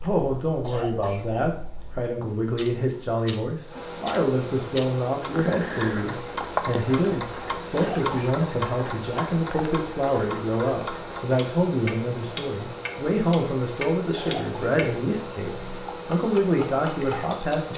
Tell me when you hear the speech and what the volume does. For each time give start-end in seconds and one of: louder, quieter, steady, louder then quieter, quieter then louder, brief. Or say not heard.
0.0-17.7 steady.